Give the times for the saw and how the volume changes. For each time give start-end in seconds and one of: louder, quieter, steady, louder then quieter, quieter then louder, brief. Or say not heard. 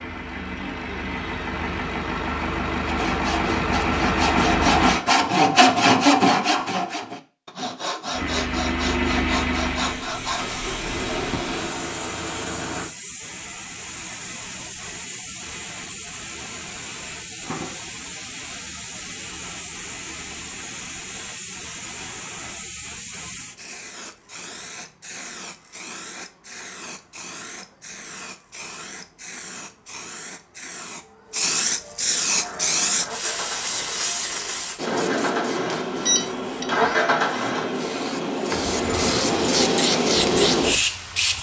2.9-10.6 louder then quieter.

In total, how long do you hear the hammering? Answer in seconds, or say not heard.
not heard.